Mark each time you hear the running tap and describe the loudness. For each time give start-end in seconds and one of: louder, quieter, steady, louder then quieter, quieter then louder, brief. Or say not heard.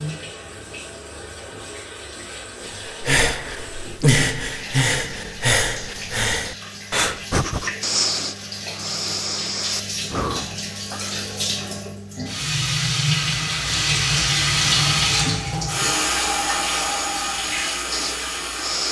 0.0-18.8 louder.